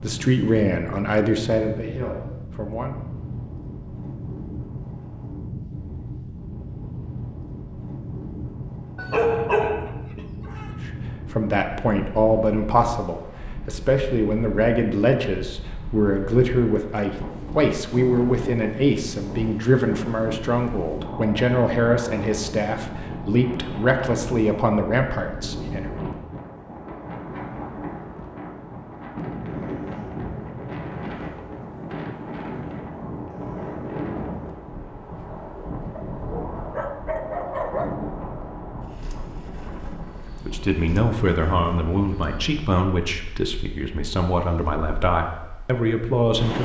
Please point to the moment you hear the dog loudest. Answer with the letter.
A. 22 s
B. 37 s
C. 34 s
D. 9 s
D.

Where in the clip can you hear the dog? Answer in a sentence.
You can hear the dog from 8.9 to 10.7 s and from 36.0 to 38.0 s.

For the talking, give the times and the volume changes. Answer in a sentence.
The talking can be heard briefly from 0.0 to 3.0 s; from 10.8 to 25.9 s, at a steady volume; and from 40.5 to 46.6 s, getting quieter then louder.